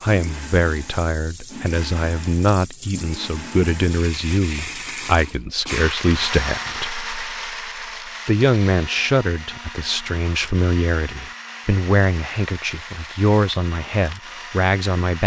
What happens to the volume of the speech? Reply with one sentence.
The volume of the speech stays about the same.